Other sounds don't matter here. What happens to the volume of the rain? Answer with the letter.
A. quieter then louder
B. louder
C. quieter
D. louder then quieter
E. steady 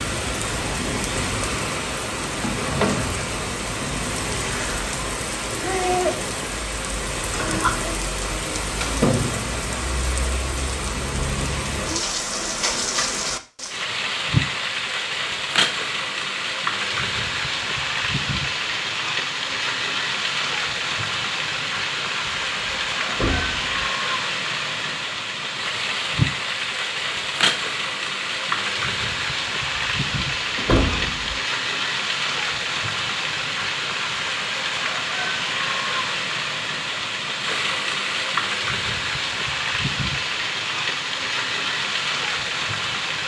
E.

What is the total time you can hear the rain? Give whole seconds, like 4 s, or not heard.
43 s.